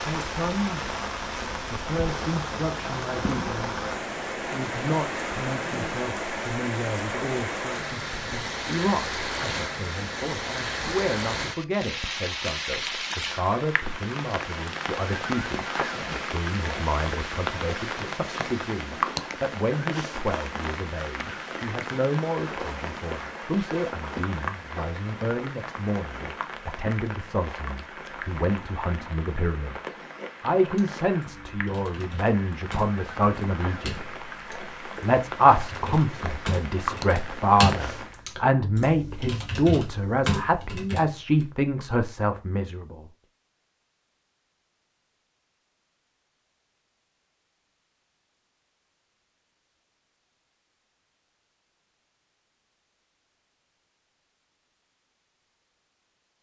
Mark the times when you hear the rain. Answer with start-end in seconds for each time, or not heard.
0.0-38.2.